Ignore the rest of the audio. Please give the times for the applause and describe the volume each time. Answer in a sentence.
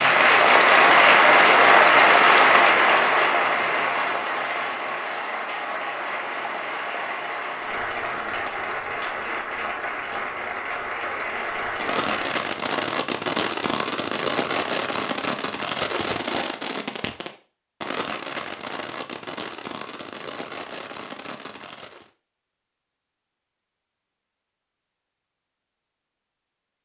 The applause can be heard from 0.0 to 12.4 s, getting quieter.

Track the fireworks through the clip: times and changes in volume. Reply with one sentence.
You can hear the fireworks from 11.8 to 22.1 s, getting quieter.